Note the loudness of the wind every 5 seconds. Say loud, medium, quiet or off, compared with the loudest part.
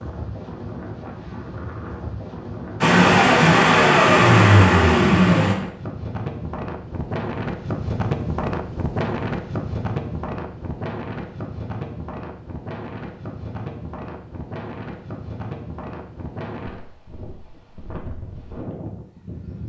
medium, loud, medium, medium.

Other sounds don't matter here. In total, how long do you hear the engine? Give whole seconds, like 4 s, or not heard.
3 s.